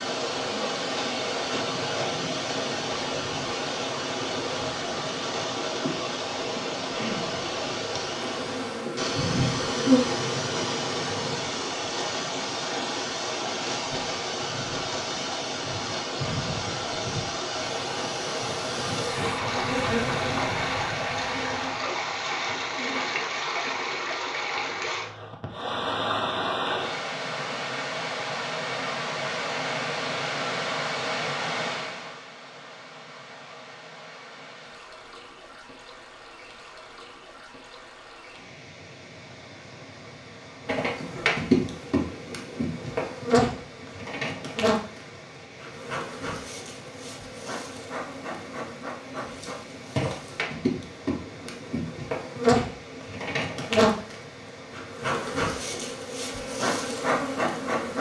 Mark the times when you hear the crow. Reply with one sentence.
You can't hear the crow here.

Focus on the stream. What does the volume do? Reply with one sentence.
The loudness of the stream goes down.